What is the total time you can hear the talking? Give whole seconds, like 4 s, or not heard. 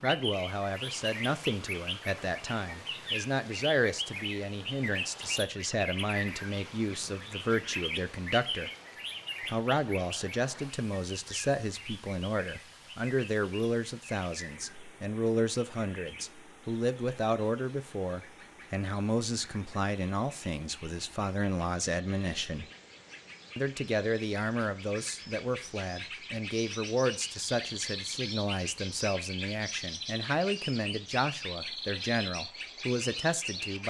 32 s.